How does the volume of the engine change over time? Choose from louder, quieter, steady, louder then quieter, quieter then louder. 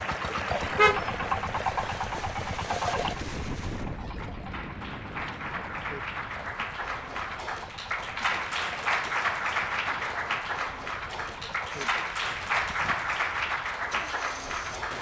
quieter.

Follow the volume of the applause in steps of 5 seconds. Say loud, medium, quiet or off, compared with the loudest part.
medium, loud, loud.